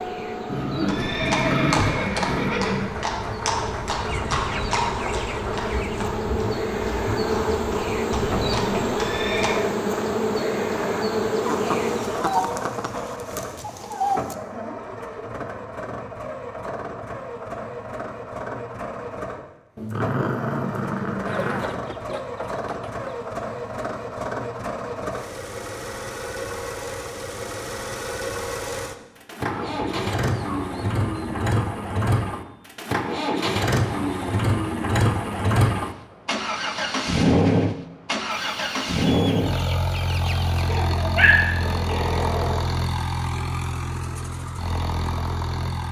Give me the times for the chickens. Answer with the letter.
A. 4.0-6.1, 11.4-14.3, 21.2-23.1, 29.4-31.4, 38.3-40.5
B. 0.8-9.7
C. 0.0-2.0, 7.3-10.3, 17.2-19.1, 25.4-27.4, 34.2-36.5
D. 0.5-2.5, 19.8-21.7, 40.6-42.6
A.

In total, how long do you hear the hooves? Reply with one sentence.
The hooves can be heard for 9 seconds in total.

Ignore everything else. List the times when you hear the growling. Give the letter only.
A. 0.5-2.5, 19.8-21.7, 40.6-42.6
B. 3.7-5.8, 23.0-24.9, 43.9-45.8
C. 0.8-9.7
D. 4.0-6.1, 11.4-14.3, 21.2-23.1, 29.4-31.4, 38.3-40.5
A.